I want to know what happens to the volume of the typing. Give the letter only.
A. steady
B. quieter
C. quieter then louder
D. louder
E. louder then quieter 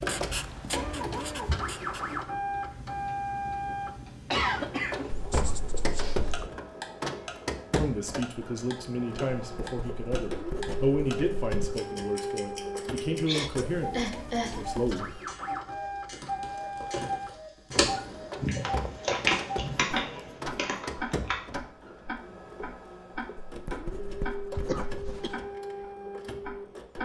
E.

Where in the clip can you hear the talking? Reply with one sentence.
You can hear the talking from 7.8 to 15.2 s.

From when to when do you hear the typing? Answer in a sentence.
You can hear the typing from 16.1 to 21.6 s.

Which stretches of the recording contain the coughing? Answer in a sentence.
The coughing can be heard from 4.3 to 6.2 s, from 13.2 to 14.7 s and from 24.5 to 25.4 s.